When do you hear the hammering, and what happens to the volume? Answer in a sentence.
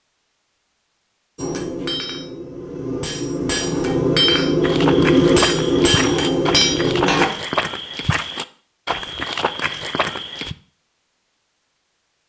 The hammering can be heard from 1.4 to 7.2 s, getting louder.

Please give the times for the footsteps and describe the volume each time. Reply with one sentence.
The footsteps can be heard from 4.6 to 10.6 s, at a steady volume.